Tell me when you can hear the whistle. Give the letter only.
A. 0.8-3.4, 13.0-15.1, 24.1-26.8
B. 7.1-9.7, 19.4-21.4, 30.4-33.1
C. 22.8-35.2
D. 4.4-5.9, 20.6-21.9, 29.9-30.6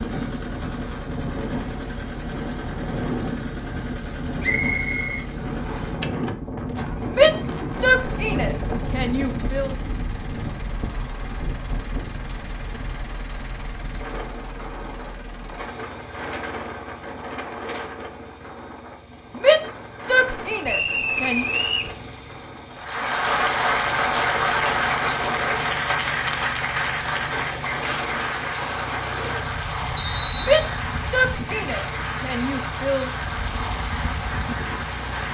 D.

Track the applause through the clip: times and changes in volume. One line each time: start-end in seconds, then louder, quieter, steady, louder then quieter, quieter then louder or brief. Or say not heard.
22.8-35.2 quieter.